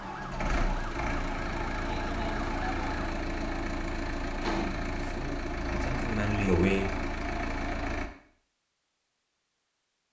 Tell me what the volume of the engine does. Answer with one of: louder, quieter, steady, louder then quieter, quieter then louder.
steady.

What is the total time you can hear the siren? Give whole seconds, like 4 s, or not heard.
3 s.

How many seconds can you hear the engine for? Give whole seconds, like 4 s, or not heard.
8 s.